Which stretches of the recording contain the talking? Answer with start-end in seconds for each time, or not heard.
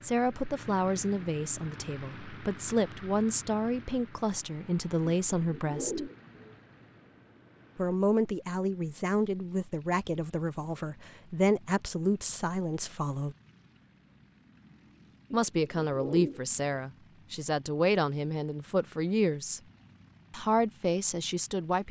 0.0-6.1, 7.8-13.3, 15.3-19.6, 20.3-21.8.